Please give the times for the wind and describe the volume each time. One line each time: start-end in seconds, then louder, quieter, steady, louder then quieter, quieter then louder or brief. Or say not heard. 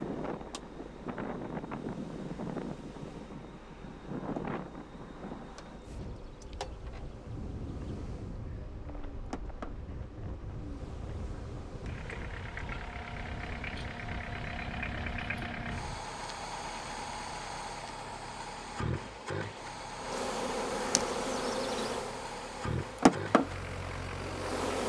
0.0-16.1 quieter.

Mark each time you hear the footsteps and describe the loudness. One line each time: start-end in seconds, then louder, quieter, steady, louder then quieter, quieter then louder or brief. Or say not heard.
not heard.